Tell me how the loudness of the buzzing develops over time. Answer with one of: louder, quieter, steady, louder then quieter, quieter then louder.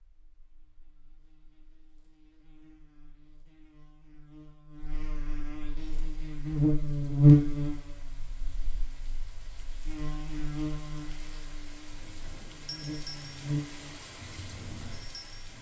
louder then quieter.